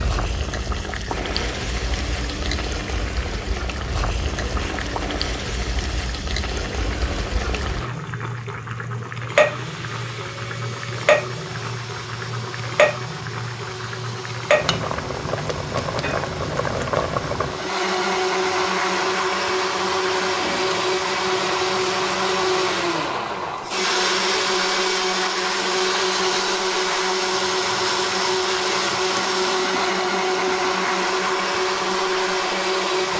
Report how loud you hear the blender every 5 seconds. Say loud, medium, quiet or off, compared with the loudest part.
quiet, quiet, quiet, loud, loud, loud, loud.